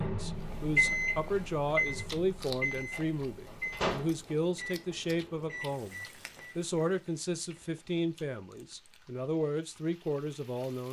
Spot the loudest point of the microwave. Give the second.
1 s.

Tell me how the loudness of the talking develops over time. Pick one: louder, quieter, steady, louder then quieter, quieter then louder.
steady.